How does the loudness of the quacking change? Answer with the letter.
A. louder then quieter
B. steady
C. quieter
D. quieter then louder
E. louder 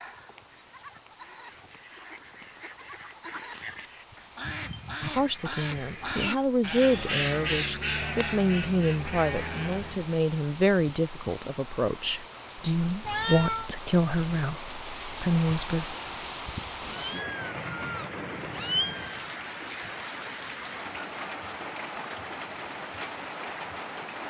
E.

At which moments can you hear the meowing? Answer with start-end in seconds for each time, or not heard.
5.7-6.3, 13.1-13.7, 16.8-19.4.